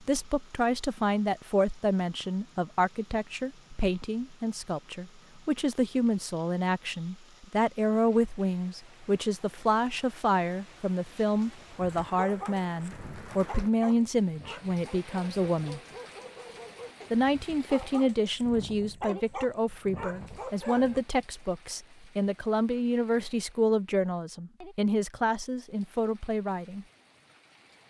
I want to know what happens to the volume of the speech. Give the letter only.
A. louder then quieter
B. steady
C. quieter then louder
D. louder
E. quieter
B.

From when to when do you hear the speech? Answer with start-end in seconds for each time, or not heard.
0.0-15.8, 17.1-26.9.